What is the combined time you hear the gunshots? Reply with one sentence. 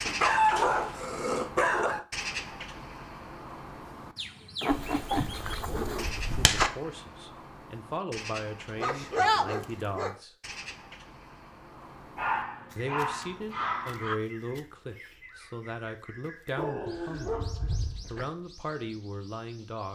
You can hear the gunshots for 2 seconds altogether.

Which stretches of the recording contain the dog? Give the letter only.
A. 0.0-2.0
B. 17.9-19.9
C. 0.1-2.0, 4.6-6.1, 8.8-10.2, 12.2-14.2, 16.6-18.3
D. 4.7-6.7
C.